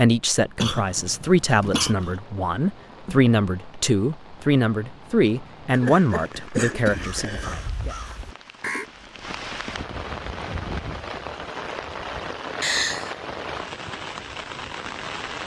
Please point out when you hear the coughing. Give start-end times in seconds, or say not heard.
0.6-2.1, 5.7-7.7, 12.6-13.2.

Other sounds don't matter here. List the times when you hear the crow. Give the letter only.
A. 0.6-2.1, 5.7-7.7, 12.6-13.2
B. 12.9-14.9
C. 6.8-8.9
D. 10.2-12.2
C.